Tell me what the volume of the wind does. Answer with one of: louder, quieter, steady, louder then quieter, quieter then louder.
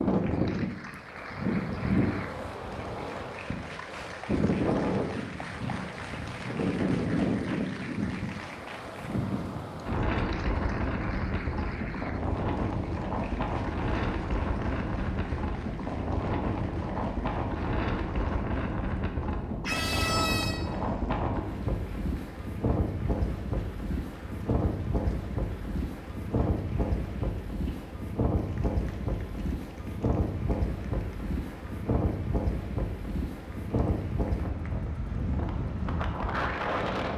steady.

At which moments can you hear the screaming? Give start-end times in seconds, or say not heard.
19.6-20.6.